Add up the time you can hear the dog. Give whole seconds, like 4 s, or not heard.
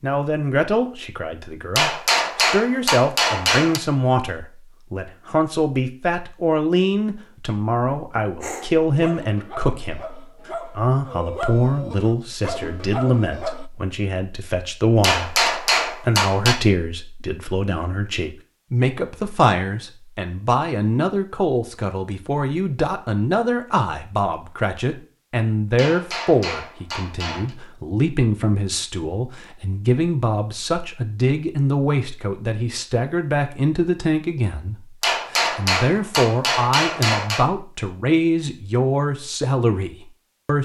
5 s.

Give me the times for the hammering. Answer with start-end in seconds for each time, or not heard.
1.8-3.8, 15.0-16.6, 25.8-27.6, 35.0-37.5.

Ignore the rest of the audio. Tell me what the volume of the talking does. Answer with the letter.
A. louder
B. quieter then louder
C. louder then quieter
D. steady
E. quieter
D.